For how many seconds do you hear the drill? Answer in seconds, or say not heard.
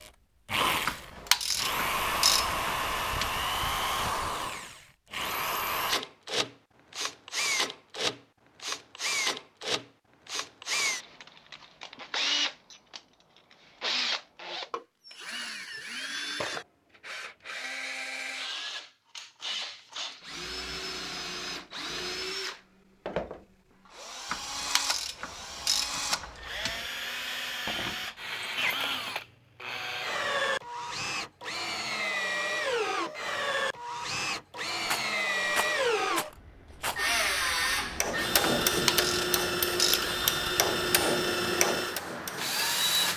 43 s.